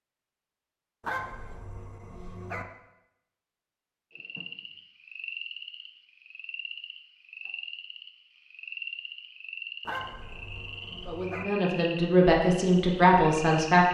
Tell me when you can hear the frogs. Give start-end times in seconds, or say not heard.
4.1-13.7.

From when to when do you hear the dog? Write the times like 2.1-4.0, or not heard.
1.0-2.6, 9.8-11.4.